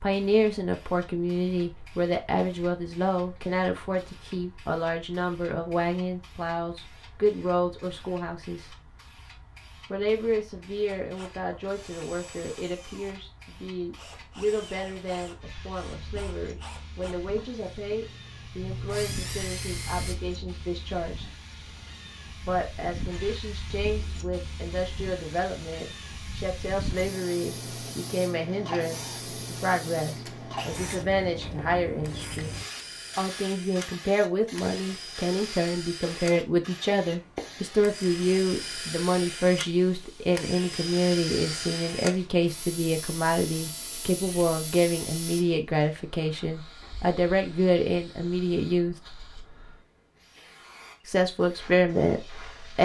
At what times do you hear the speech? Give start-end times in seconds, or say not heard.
0.0-8.8, 9.9-21.3, 22.4-32.5, 33.1-49.0, 51.0-52.7.